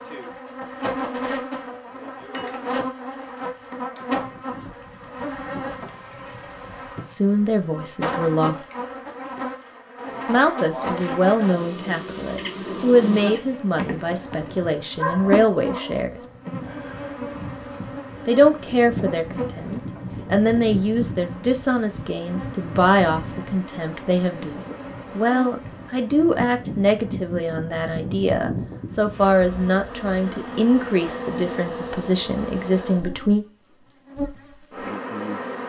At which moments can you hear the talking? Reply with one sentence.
The talking can be heard from 7.0 to 8.7 s, from 10.2 to 16.2 s, from 18.2 to 24.6 s and from 25.1 to 33.5 s.